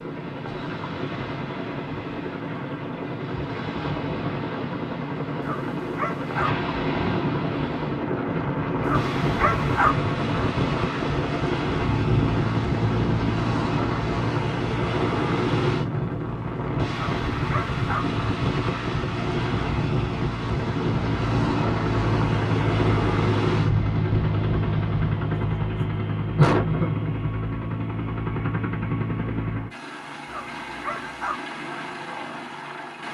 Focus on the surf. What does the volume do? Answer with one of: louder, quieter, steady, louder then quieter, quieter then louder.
louder.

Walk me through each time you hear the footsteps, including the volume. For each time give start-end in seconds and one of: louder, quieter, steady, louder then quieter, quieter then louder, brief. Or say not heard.
not heard.